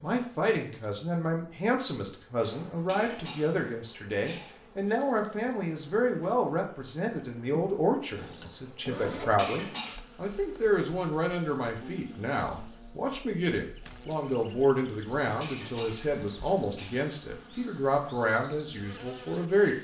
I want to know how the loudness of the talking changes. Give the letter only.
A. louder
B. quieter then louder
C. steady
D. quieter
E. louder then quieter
C.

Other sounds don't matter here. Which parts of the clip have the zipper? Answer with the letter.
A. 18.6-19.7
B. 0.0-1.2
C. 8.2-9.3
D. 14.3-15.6
C.